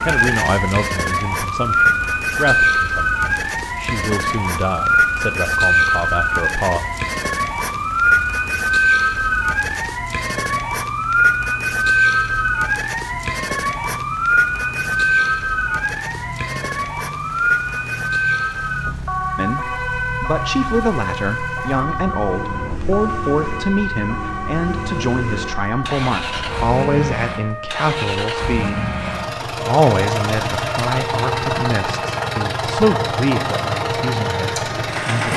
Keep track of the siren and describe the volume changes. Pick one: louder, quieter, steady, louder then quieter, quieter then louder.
quieter.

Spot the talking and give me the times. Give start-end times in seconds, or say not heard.
0.0-6.8, 19.4-35.3.